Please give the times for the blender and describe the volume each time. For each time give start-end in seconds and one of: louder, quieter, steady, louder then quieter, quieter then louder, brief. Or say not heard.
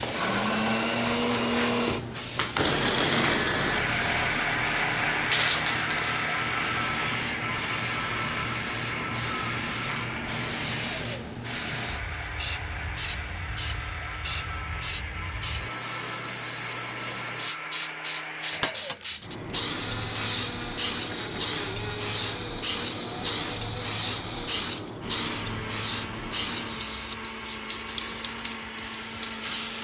0.0-29.8 quieter.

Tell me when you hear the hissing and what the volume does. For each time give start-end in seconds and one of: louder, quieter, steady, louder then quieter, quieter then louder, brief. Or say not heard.
0.0-29.8 steady.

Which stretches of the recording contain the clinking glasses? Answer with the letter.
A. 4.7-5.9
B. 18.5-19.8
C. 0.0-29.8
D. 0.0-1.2
B.